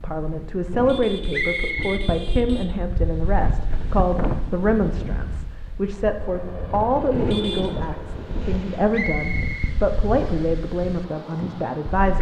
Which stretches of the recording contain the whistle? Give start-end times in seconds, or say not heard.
1.3-2.1, 8.9-10.4.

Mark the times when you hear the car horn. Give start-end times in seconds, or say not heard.
0.7-2.8, 7.1-7.8.